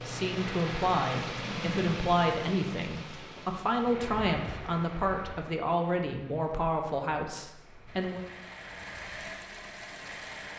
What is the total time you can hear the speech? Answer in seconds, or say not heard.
8 s.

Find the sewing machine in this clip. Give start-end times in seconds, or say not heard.
0.0-2.2, 7.8-10.5.